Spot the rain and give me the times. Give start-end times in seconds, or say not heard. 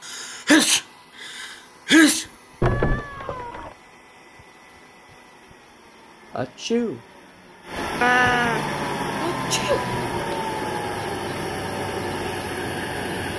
not heard.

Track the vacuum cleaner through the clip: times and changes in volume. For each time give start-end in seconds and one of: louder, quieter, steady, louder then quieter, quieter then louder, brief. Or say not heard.
0.0-13.3 louder.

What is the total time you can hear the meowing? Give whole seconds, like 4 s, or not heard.
2 s.